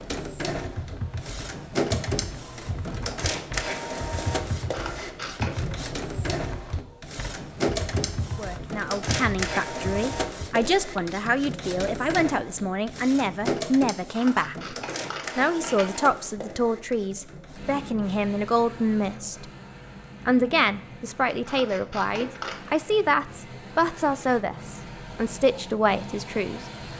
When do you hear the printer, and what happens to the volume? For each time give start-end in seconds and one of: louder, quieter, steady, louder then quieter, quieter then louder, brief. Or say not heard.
0.0-26.9 quieter.